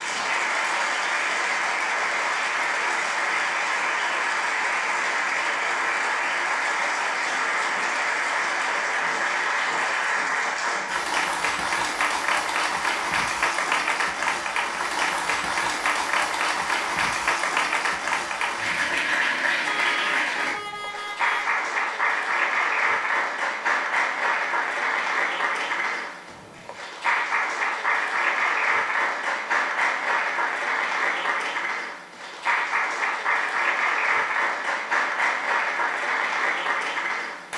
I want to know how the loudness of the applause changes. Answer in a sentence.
The volume of the applause stays about the same.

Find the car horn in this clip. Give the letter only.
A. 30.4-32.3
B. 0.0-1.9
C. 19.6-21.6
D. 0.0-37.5
C.